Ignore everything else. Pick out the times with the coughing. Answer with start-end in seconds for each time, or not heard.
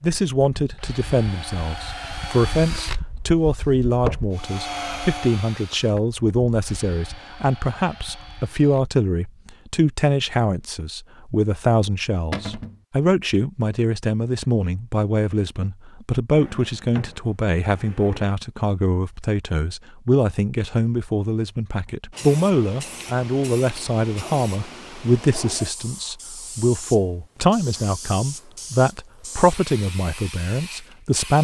not heard.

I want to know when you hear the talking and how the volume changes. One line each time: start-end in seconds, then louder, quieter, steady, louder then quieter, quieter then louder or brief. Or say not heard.
0.0-31.4 steady.